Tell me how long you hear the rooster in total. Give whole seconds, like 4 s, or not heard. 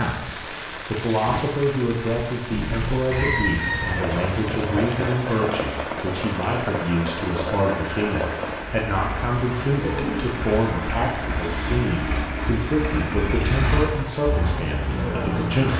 2 s.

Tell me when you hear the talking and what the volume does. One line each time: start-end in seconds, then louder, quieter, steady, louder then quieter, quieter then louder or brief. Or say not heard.
0.0-15.7 steady.